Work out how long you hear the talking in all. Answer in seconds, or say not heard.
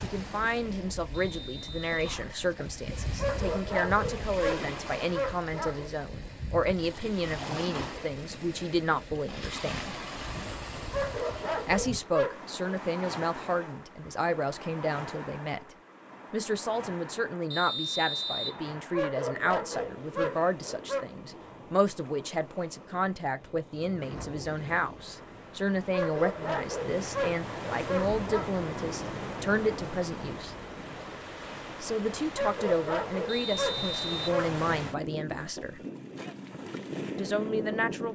33 s.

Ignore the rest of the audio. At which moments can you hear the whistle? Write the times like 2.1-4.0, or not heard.
1.1-2.0, 17.5-18.6, 33.2-34.2.